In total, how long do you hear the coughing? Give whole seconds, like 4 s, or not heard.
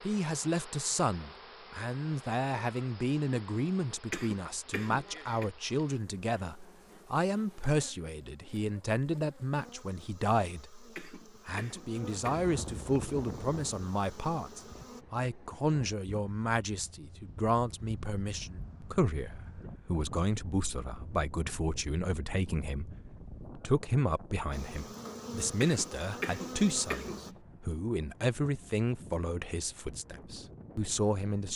5 s.